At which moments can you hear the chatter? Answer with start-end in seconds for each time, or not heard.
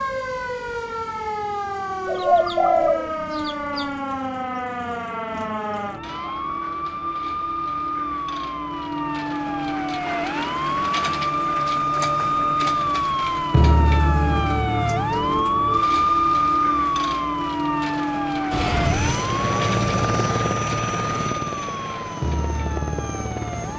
not heard.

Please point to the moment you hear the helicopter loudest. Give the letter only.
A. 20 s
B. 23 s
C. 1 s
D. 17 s
A.